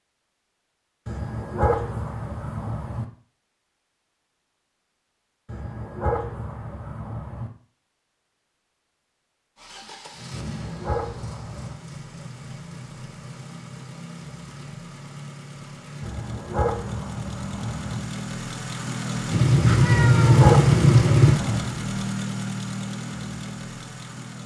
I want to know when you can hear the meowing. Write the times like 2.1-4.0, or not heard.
19.3-21.4.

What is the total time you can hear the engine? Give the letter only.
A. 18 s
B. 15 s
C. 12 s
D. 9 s
B.